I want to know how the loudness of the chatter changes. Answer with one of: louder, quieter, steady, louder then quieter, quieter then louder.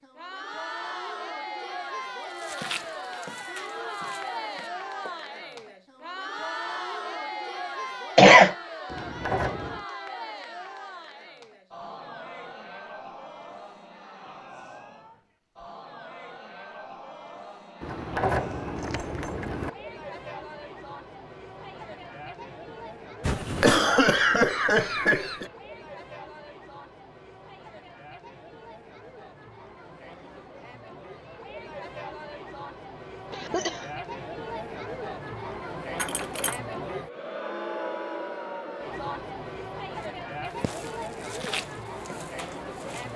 quieter then louder.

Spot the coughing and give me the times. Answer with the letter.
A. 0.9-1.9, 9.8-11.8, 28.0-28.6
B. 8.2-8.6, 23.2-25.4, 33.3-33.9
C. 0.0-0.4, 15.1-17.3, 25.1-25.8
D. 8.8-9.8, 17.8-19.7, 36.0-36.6
B.